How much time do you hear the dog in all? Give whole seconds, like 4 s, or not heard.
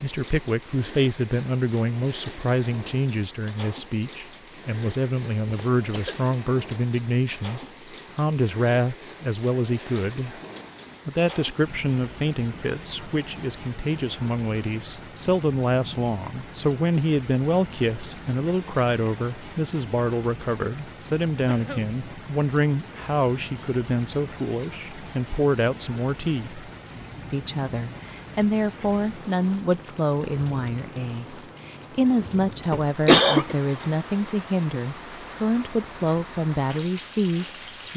not heard.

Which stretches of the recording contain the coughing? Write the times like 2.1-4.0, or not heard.
5.5-6.2, 21.4-21.9, 32.7-33.5.